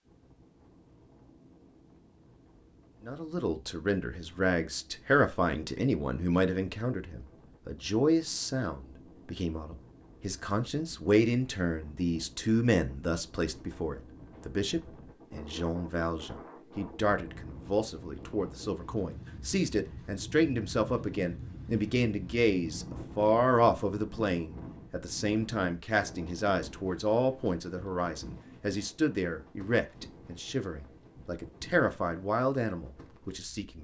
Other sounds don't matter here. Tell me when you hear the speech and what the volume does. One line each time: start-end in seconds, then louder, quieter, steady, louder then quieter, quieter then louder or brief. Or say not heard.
3.0-33.7 steady.